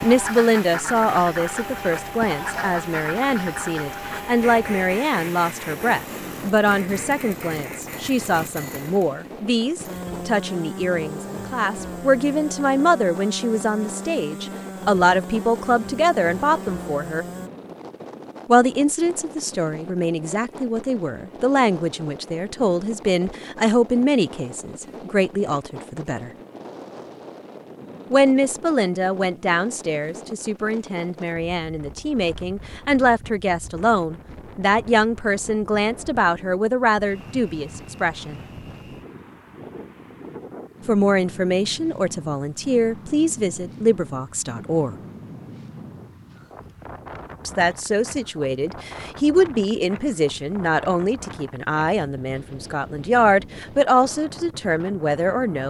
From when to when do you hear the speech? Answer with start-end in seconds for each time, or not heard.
0.0-17.2, 18.4-26.3, 28.1-38.5, 40.9-45.0, 47.5-55.6.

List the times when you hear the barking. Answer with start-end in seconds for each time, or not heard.
not heard.